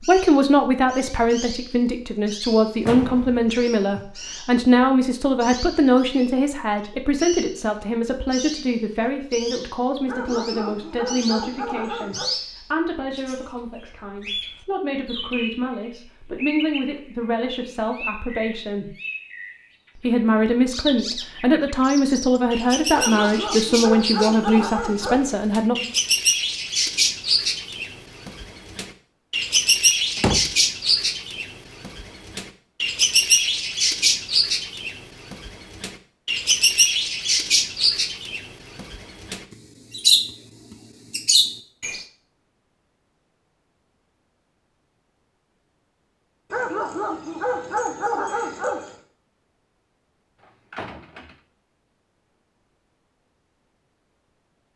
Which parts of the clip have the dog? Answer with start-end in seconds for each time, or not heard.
10.1-12.3, 22.9-25.4, 46.5-49.0.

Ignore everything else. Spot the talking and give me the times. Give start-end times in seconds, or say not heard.
0.0-18.9, 19.9-25.9.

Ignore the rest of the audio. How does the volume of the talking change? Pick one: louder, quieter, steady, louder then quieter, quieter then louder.
quieter then louder.